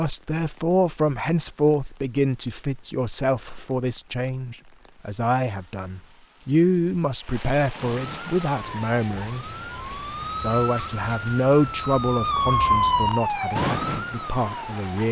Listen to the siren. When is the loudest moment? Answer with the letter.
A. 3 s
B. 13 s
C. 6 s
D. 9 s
B.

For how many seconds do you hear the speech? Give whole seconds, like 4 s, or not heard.
14 s.